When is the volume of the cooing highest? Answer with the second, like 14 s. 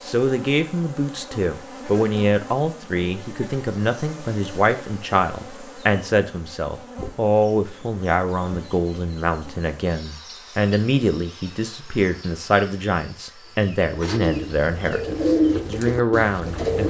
15 s.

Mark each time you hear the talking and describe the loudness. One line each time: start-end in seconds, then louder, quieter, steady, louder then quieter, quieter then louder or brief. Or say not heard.
0.0-16.8 steady.